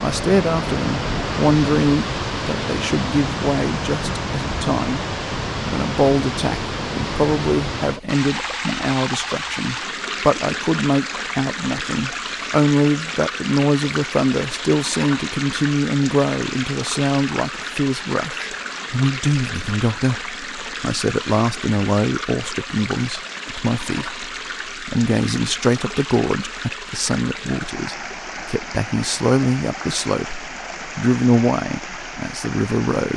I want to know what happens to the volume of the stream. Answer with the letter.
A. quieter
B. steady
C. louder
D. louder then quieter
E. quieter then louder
A.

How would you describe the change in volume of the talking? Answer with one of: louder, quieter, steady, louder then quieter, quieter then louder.
steady.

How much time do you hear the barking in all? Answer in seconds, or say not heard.
not heard.